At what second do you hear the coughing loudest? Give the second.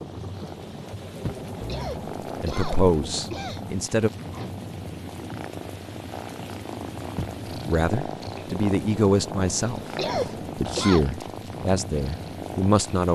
10 s.